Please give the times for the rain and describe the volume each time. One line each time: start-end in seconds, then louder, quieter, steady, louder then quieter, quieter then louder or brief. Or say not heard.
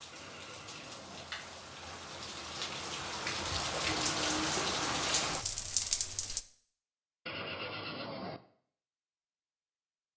0.0-6.4 louder.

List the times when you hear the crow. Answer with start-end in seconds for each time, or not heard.
not heard.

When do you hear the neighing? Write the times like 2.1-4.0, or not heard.
0.1-1.2, 7.2-8.4.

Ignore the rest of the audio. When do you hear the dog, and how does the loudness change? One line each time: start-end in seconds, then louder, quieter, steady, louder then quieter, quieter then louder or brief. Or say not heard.
not heard.